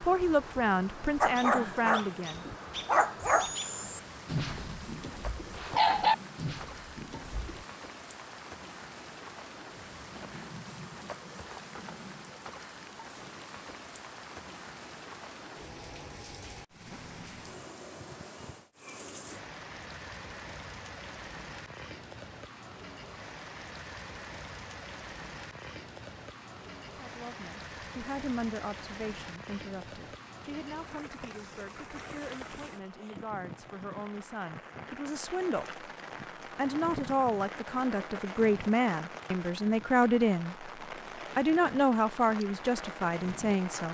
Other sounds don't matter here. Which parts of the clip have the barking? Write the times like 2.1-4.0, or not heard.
1.2-7.7.